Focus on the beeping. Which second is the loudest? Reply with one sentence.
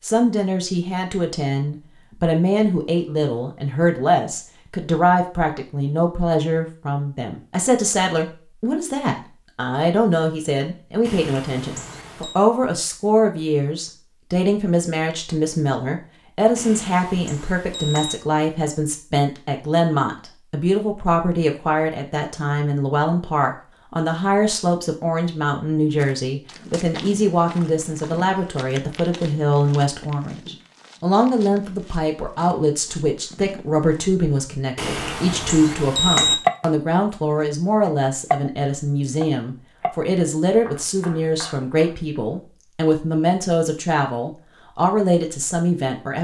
The volume of the beeping peaks at 36 seconds.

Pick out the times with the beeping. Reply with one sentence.
You can hear the beeping from 11.0 to 12.4 s, from 16.6 to 18.1 s and from 34.8 to 36.4 s.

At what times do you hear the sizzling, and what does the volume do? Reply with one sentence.
The sizzling can't be heard in this clip.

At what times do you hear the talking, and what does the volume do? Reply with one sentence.
You can hear the talking from 0.0 to 46.1 s, at a steady volume.